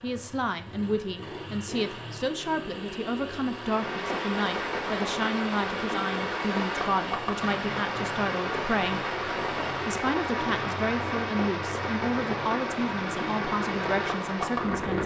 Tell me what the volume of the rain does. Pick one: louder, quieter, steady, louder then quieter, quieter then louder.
steady.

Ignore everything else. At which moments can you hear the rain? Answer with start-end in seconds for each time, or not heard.
3.5-15.0.